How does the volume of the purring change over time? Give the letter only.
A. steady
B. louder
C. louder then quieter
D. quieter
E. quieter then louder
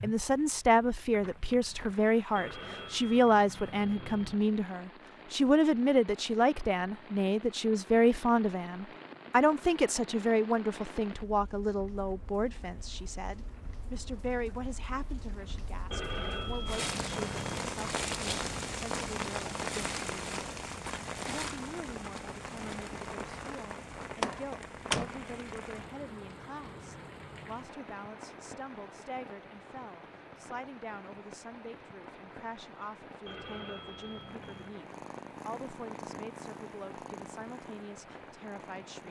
D.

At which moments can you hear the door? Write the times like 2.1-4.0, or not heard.
24.2-25.4.